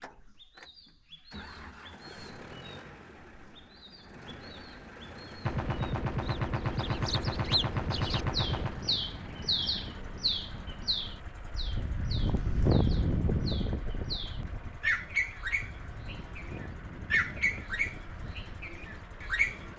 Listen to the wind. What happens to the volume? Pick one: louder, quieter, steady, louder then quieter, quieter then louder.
louder then quieter.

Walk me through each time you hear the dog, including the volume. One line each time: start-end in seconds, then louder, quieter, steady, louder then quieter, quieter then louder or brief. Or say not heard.
not heard.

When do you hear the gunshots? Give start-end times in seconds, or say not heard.
5.5-8.8.